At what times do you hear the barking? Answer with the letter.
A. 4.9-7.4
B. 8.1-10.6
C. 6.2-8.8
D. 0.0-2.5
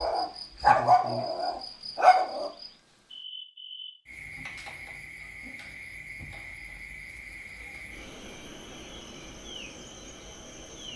D.